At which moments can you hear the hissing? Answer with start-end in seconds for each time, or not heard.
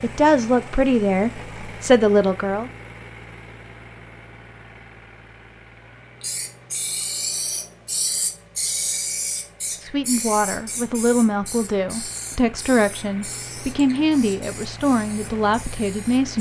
6.2-16.3.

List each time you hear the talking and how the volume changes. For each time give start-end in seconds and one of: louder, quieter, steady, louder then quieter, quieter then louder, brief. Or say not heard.
0.0-2.7 brief
9.8-16.3 steady.